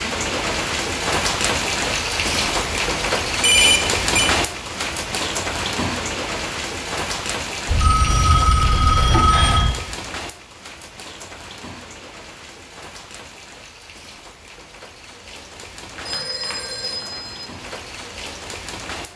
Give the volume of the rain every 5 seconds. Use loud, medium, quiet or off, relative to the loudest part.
loud, medium, quiet, quiet.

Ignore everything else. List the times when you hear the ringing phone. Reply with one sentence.
The ringing phone can be heard from 3.4 to 4.3 s, from 7.7 to 9.7 s and from 15.9 to 17.4 s.